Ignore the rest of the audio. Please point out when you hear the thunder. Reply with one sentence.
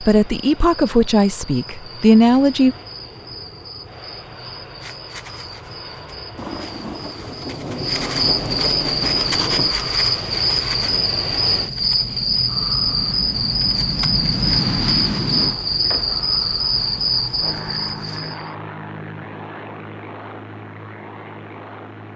The thunder can be heard from 6.3 to 9.8 s.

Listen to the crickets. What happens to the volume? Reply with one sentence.
The volume of the crickets goes up.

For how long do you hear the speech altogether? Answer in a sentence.
You can hear the speech for 3 seconds altogether.